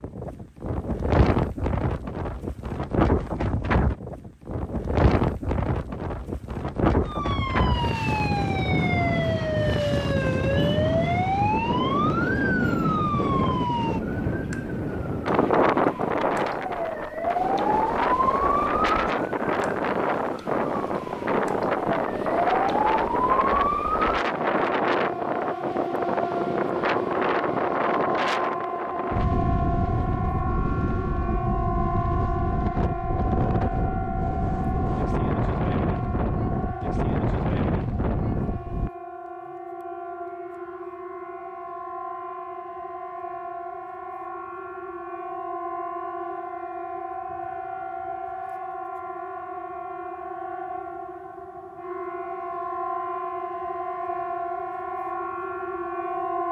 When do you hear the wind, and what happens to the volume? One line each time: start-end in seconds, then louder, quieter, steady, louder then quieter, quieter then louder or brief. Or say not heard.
0.0-38.9 steady.